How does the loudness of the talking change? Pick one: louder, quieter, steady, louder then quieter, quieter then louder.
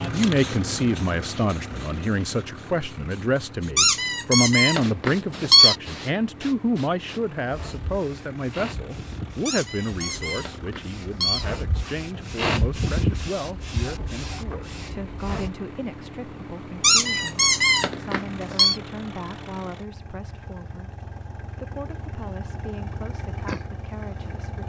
quieter.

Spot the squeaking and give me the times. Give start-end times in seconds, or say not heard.
3.8-5.8, 9.4-11.4, 16.8-18.8.